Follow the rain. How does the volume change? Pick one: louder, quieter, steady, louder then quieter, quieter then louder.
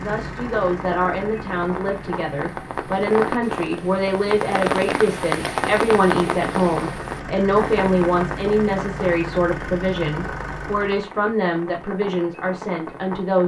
louder then quieter.